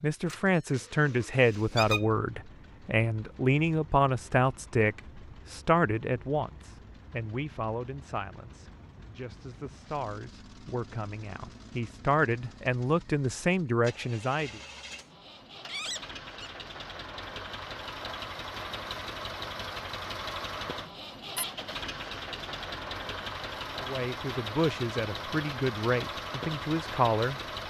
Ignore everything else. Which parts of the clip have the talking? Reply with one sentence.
You can hear the talking from 0.0 to 14.6 s and from 23.8 to 27.4 s.